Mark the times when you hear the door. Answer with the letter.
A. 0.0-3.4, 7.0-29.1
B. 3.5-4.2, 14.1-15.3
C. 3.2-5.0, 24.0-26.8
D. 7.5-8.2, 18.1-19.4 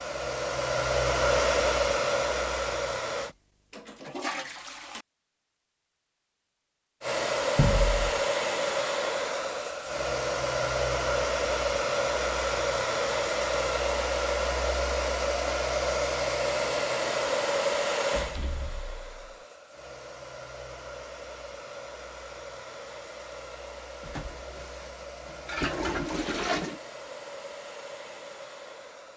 D.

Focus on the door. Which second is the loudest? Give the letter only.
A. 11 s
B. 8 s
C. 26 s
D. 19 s
B.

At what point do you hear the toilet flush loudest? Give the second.
26 s.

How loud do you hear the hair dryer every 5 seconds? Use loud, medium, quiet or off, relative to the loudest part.
loud, loud, loud, loud, quiet, quiet.